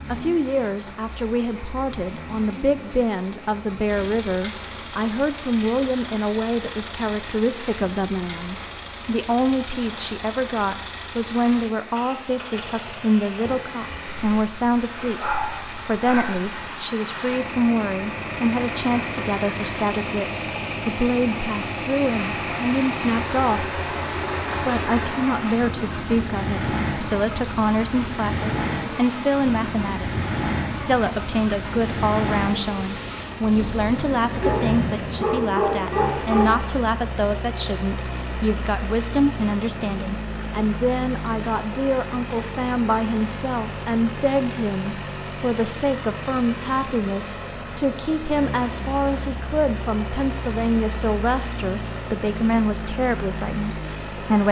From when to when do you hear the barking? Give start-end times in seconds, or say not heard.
14.3-16.6, 34.4-36.8.